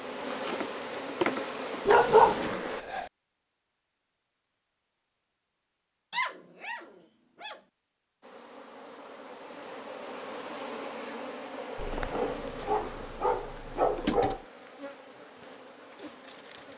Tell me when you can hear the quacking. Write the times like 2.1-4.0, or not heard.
not heard.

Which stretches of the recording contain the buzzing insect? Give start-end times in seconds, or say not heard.
0.0-2.9, 8.2-16.7.